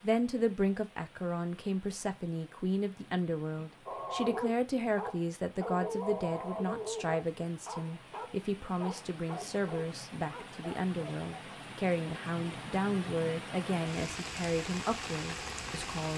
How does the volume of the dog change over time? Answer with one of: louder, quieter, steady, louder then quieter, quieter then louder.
quieter.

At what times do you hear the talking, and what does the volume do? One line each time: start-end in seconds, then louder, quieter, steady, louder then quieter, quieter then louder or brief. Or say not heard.
0.0-16.1 steady.